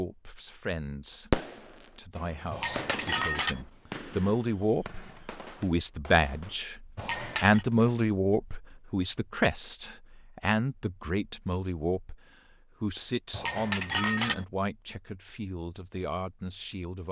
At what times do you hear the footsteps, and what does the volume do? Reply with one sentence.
The footsteps can't be heard in this clip.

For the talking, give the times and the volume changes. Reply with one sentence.
The talking can be heard from 0.0 to 17.0 s, getting louder then quieter.